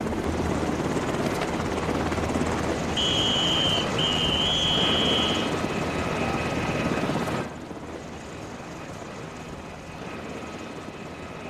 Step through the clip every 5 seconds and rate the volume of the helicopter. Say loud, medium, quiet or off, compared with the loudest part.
loud, loud, medium.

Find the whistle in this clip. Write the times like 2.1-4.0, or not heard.
3.0-5.5.